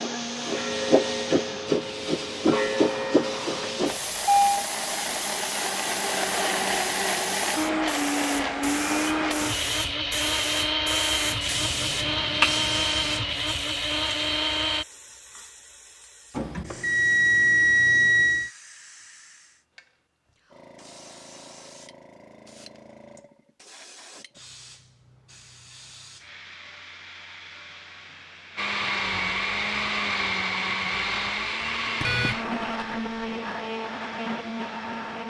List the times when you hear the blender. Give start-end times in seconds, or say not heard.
0.0-14.8, 28.6-35.2.